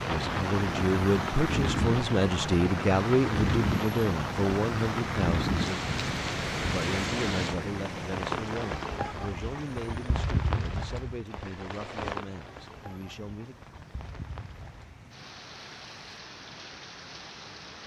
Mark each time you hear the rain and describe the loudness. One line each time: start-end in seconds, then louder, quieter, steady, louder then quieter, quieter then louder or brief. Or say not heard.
0.0-17.8 quieter.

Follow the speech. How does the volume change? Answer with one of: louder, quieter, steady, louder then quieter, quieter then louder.
quieter.